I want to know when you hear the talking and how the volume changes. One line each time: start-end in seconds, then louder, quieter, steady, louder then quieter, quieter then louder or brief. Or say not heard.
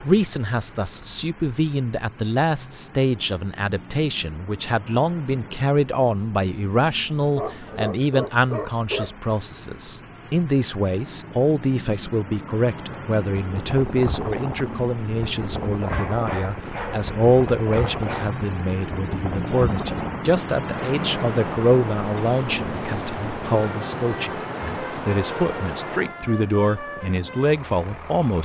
0.0-28.4 steady.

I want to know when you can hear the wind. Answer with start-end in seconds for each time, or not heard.
13.4-28.2.